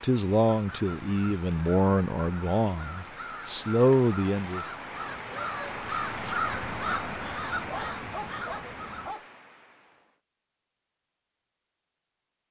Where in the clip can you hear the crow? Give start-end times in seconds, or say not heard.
0.5-9.1.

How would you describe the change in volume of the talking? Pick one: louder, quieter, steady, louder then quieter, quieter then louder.
quieter then louder.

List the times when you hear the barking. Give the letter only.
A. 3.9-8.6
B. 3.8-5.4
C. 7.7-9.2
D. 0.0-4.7
C.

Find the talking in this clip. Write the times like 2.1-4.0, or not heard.
0.0-4.7.